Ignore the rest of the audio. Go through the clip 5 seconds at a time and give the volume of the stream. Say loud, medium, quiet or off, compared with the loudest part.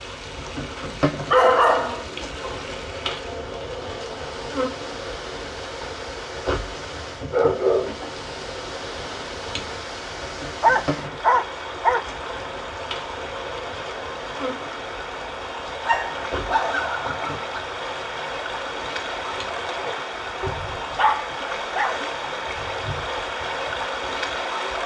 medium, medium, medium, loud, loud.